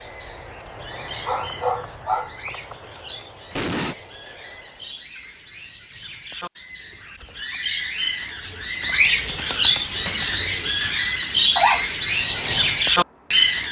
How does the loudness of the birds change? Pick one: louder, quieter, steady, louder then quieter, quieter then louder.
louder.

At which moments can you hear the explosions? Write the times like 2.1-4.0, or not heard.
3.5-4.0.